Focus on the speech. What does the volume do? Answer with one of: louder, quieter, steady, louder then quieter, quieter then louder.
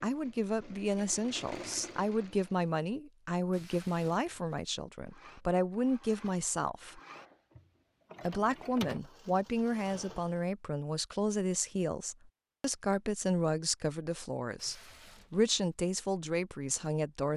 steady.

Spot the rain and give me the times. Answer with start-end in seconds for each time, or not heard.
not heard.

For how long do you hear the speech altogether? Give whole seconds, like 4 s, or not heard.
16 s.